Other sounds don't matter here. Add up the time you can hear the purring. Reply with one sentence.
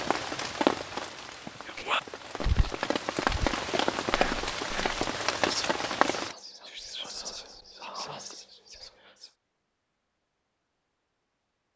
You can't hear the purring here.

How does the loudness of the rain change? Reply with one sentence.
The loudness of the rain goes down, then up.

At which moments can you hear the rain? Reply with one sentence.
The rain can be heard from 0.0 to 6.3 s.